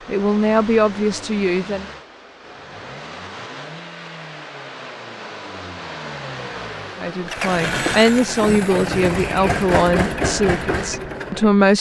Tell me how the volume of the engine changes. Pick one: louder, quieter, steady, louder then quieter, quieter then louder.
louder.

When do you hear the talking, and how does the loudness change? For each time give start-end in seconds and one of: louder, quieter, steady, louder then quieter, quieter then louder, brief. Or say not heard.
0.1-1.9 brief
7.0-11.7 quieter.